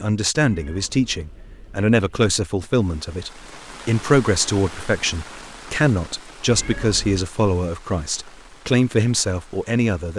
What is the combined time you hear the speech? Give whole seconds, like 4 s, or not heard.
10 s.